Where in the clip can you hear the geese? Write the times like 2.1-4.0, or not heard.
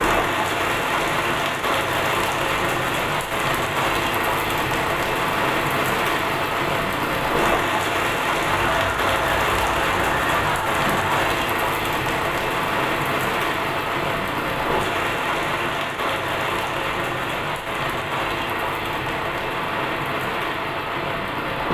8.4-11.2.